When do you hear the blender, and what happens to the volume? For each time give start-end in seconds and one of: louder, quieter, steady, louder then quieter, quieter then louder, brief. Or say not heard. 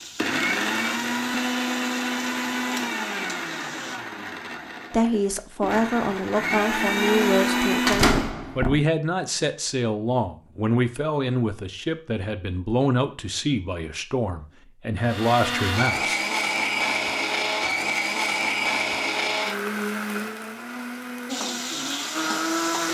0.0-8.2 quieter then louder
15.0-22.8 quieter.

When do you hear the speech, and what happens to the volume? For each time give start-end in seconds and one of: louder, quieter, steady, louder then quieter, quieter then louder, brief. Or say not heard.
4.9-16.2 steady.